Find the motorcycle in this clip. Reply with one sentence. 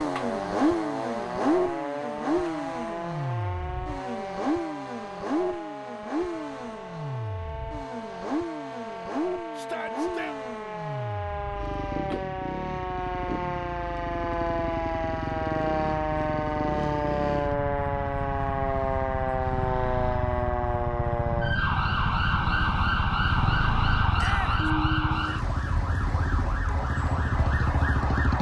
You can hear the motorcycle from 0.0 to 28.3 s.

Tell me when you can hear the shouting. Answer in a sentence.
The shouting can be heard from 9.6 to 10.3 s and from 24.1 to 24.7 s.